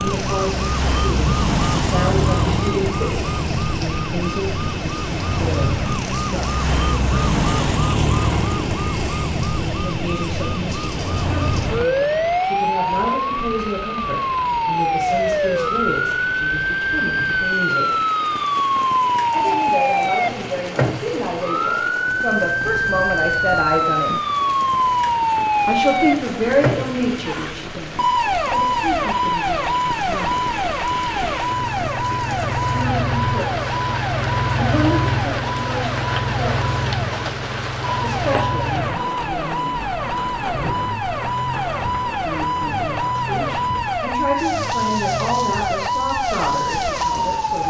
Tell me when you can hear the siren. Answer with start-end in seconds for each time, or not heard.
0.0-47.6.